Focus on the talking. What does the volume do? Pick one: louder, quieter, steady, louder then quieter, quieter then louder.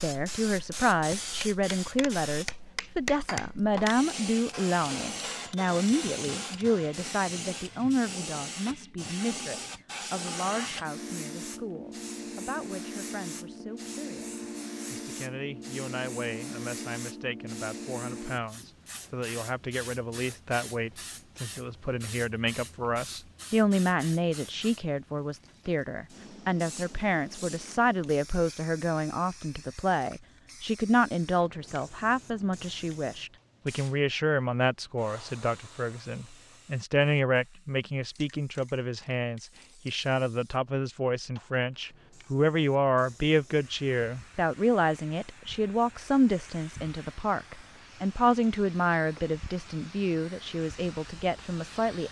quieter then louder.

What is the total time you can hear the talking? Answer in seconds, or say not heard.
52 s.